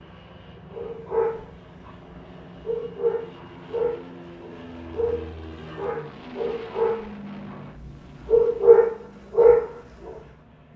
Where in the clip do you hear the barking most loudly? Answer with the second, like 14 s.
9 s.